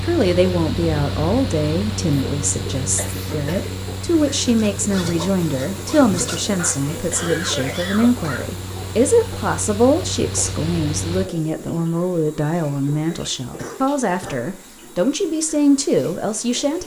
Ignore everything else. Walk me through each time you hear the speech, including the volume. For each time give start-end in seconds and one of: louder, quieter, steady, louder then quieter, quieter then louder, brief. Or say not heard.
0.0-16.8 steady.